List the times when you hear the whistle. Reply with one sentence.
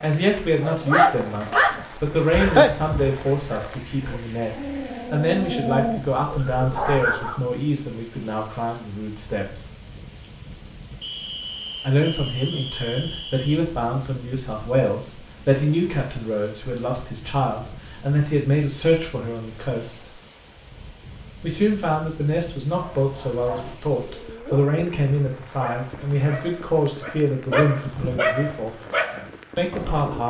You can hear the whistle from 11.0 to 13.6 s.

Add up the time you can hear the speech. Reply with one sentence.
The speech can be heard for 26 seconds in total.